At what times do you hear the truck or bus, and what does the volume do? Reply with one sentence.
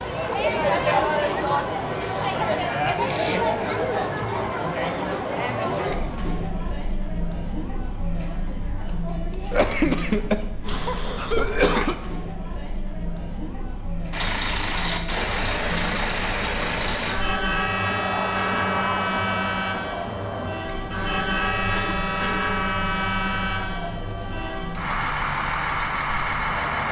The truck or bus can be heard from 14.1 to 26.8 s, at a steady volume.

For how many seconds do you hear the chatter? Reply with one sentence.
You can hear the chatter for 27 seconds altogether.